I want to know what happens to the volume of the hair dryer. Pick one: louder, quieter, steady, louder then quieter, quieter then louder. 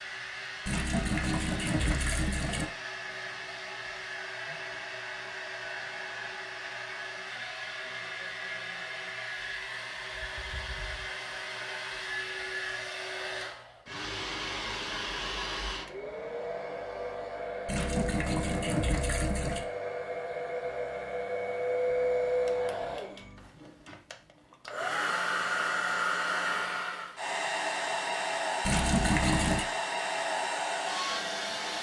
louder.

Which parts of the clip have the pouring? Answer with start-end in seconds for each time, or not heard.
0.7-2.6, 17.6-19.6, 28.6-29.6.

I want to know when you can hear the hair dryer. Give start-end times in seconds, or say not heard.
0.0-31.7.